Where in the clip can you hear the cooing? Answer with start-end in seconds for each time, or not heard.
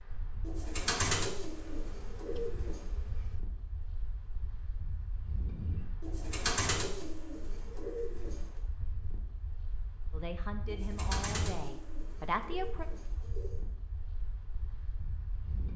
0.4-2.8, 6.0-8.4, 10.7-13.6.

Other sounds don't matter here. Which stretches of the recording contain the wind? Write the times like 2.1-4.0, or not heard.
0.0-15.7.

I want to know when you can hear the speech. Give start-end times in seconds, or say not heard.
10.1-12.8.